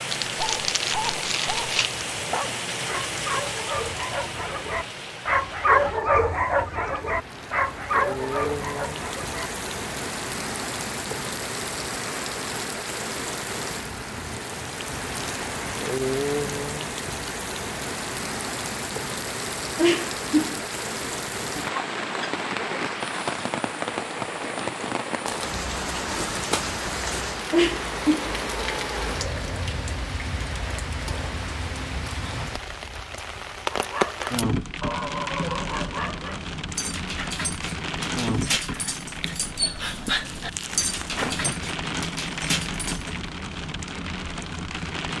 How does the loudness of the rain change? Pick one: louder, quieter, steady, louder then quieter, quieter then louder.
steady.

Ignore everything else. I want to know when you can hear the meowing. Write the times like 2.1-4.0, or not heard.
19.8-20.6, 27.5-29.1.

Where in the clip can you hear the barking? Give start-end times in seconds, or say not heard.
0.4-9.5, 33.6-43.1.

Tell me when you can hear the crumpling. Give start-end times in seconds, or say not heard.
0.1-2.0, 25.2-27.2, 40.2-41.6.